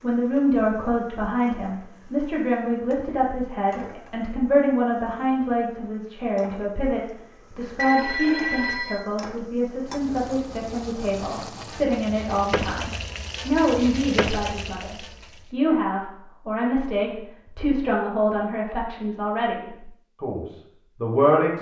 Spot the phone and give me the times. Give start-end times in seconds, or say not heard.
7.8-9.1.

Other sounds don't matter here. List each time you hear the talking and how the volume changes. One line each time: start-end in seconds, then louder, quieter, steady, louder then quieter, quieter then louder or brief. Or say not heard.
0.0-21.5 steady.